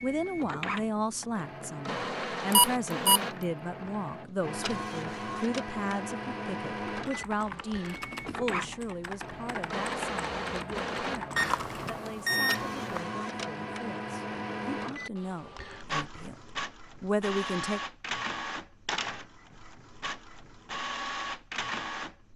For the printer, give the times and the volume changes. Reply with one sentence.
You can hear the printer from 0.0 to 22.3 s, at a steady volume.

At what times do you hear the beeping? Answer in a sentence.
The beeping can be heard from 2.5 to 3.2 s and from 11.3 to 13.0 s.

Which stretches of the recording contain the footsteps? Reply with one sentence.
The footsteps can't be heard in this clip.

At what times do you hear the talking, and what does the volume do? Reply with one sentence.
You can hear the talking from 0.0 to 17.8 s, getting quieter then louder.